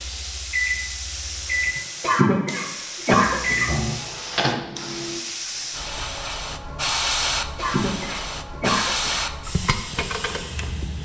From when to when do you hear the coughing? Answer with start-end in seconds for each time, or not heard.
1.8-3.7, 7.3-9.2.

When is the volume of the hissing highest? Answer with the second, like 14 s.
7 s.